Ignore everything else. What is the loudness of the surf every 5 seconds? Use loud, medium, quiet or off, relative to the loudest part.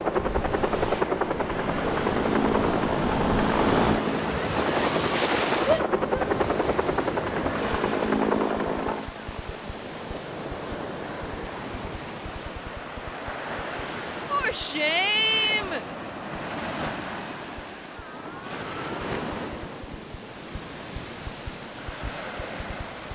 loud, loud, medium, medium, medium.